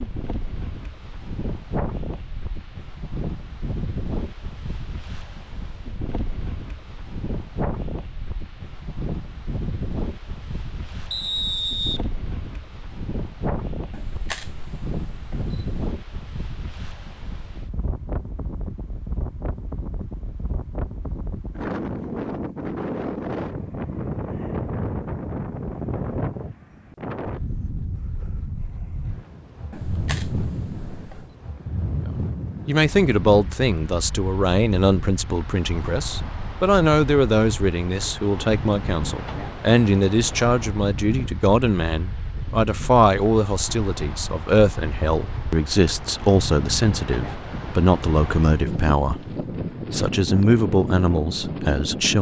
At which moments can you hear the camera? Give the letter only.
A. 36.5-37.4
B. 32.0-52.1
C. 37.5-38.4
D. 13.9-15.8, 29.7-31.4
D.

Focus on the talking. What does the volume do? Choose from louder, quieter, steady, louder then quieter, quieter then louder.
steady.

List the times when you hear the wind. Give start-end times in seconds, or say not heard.
0.0-52.1.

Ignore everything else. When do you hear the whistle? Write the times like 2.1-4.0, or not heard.
11.1-12.0.